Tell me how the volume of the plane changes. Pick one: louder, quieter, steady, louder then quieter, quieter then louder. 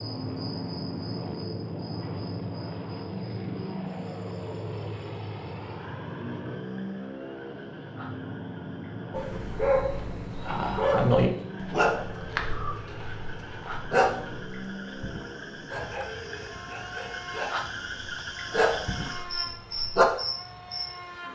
quieter.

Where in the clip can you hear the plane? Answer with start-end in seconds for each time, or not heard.
0.0-21.2.